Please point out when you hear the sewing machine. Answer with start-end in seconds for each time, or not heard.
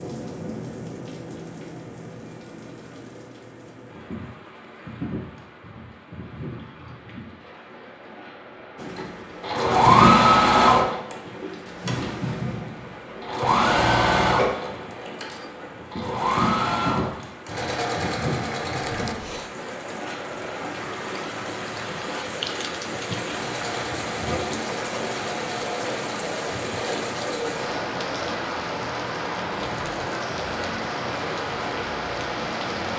8.8-19.1, 23.3-27.8.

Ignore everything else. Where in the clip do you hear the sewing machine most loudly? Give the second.
10 s.